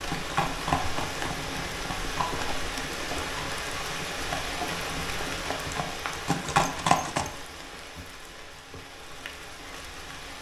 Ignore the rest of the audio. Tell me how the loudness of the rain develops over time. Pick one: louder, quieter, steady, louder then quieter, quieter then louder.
quieter.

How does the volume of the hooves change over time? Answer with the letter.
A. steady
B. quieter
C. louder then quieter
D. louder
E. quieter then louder
E.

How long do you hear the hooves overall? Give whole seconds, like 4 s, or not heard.
7 s.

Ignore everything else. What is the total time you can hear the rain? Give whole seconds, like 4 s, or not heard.
10 s.